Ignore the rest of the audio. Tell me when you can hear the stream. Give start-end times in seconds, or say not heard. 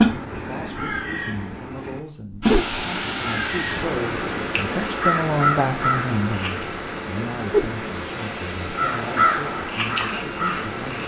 2.4-11.0.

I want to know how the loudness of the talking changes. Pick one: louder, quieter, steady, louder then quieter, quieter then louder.
louder then quieter.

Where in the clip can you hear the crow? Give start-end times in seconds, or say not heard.
0.0-6.7, 8.8-11.0.